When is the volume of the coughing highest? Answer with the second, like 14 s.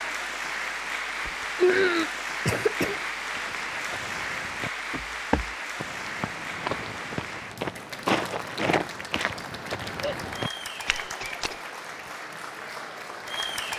2 s.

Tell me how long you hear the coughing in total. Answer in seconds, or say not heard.
3 s.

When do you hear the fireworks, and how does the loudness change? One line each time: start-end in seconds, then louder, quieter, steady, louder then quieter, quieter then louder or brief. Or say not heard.
not heard.